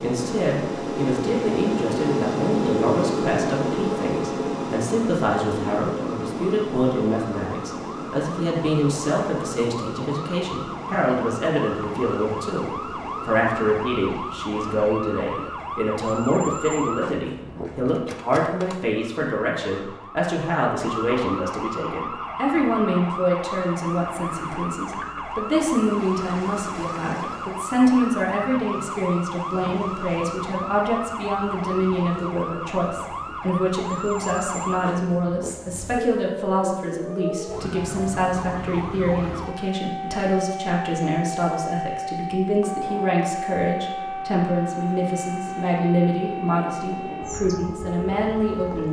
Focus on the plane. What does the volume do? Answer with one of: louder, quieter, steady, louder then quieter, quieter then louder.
quieter.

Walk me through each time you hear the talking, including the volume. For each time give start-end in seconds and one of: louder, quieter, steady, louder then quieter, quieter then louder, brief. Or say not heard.
0.0-48.8 steady.